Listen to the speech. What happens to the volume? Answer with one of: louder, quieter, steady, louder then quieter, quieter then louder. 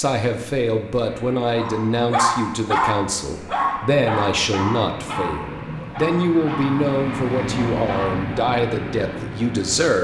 steady.